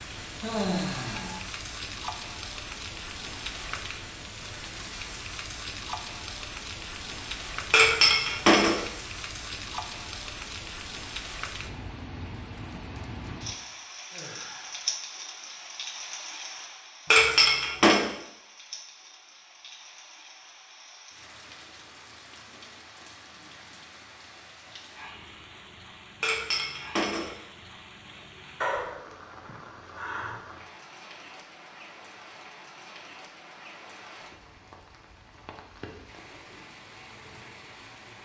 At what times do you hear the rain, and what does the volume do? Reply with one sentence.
The rain can be heard from 0.0 to 38.2 s, getting quieter.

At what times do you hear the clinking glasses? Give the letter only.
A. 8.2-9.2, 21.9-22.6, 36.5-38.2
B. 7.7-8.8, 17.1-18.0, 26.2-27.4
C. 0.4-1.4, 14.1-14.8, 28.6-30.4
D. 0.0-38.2
B.